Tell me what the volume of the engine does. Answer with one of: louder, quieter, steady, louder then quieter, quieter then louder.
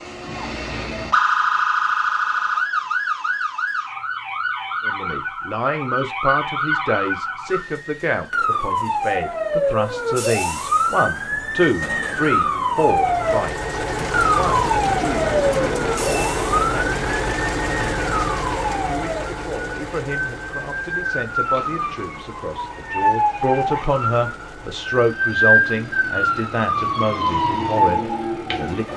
quieter.